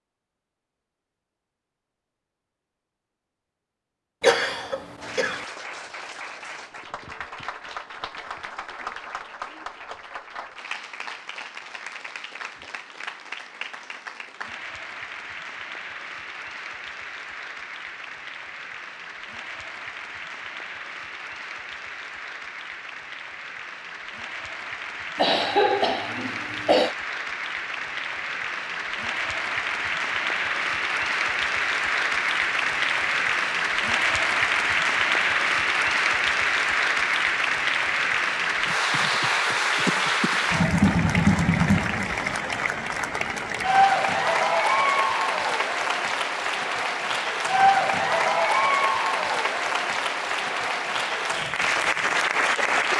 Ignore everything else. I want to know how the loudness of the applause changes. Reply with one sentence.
The volume of the applause goes up.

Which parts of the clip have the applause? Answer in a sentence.
You can hear the applause from 5.0 to 52.9 s.